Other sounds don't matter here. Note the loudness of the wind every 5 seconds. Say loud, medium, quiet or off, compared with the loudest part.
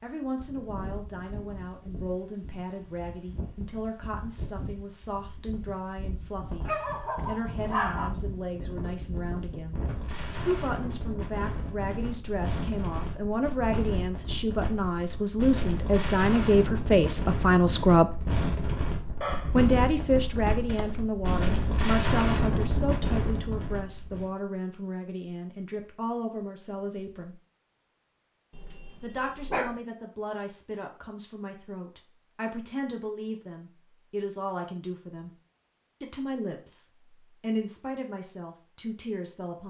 quiet, medium, medium, loud, loud, off, off, off.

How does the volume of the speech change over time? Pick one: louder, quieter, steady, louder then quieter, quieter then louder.
louder then quieter.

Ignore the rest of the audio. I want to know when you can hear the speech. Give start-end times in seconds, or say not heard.
0.0-9.8, 10.4-18.1, 19.5-27.4, 29.0-35.3, 36.0-39.6.